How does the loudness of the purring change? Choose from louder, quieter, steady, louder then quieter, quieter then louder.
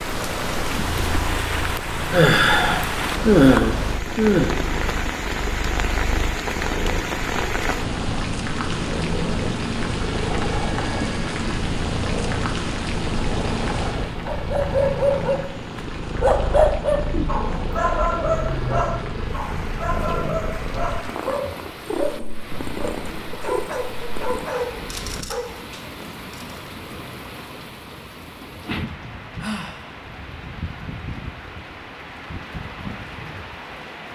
steady.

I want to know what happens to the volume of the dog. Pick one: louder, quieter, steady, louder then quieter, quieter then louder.
quieter.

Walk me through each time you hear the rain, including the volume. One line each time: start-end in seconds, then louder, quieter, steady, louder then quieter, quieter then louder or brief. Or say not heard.
0.0-34.1 quieter.